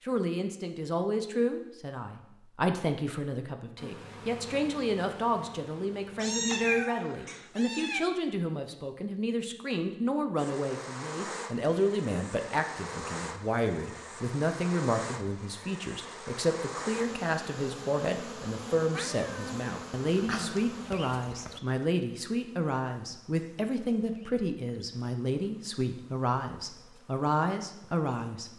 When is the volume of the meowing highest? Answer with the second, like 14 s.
7 s.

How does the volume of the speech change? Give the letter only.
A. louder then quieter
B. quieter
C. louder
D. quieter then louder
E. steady
E.